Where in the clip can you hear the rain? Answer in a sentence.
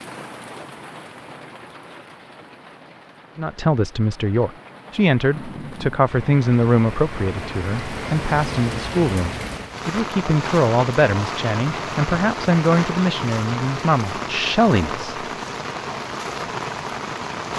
The rain can be heard from 0.0 to 17.5 s.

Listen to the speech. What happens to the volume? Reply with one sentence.
The loudness of the speech stays about the same.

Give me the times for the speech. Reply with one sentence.
The speech can be heard from 3.4 to 15.2 s.